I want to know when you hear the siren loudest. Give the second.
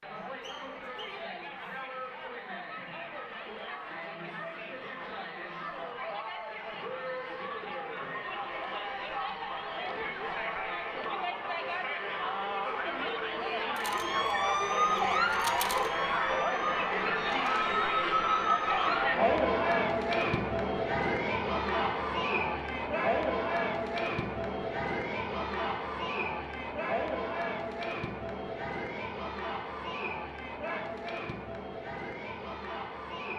15 s.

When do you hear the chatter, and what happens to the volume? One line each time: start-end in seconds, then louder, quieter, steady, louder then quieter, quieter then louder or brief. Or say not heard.
0.0-33.3 louder then quieter.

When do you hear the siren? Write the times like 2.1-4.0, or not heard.
13.8-19.1.